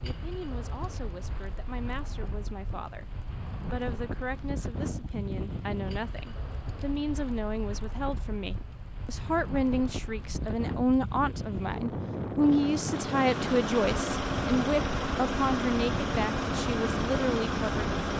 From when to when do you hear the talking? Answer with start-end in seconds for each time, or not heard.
0.0-18.1.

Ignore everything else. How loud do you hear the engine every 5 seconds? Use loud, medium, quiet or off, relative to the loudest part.
off, off, loud, loud.